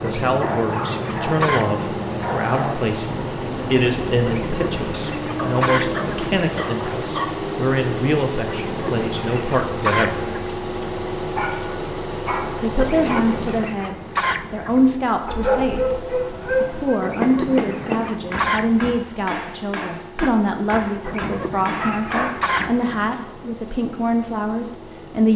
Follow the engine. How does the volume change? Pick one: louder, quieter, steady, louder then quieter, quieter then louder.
quieter.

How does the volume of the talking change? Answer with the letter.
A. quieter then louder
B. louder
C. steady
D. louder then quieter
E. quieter
C.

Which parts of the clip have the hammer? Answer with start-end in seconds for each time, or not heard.
17.1-22.7.